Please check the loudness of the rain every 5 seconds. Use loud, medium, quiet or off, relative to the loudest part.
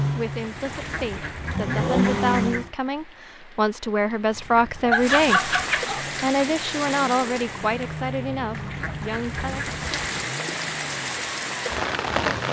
quiet, medium, loud.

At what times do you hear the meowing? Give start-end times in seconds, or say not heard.
not heard.